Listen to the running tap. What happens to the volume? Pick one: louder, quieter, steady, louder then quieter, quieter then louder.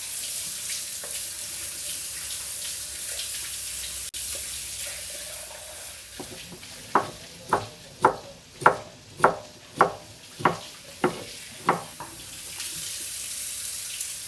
quieter then louder.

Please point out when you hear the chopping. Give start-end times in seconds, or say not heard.
6.2-12.6.